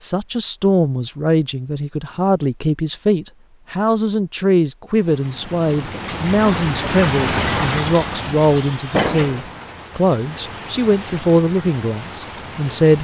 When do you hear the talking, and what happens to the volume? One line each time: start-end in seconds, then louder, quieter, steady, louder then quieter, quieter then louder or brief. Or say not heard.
0.0-12.9 steady.